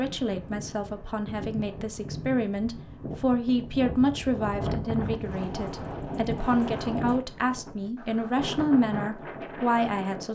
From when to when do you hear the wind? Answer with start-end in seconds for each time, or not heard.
0.0-10.3.